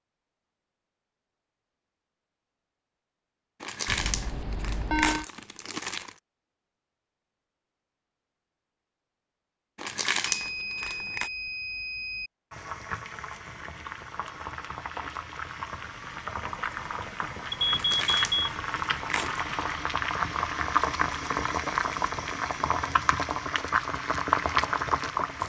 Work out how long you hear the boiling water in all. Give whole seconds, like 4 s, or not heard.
13 s.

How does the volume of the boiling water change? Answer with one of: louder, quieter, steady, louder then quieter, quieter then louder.
louder.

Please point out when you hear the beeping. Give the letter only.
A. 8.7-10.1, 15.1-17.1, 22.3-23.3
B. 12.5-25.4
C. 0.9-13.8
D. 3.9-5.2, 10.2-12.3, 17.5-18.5
D.